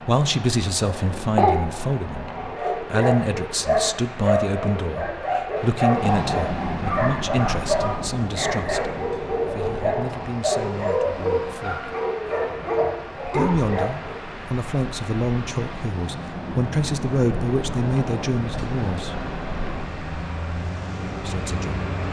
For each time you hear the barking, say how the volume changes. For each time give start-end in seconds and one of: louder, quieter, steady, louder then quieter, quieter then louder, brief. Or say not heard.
2.3-14.2 steady.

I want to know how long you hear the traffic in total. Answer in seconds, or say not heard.
16 s.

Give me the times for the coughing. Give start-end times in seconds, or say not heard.
0.8-1.9.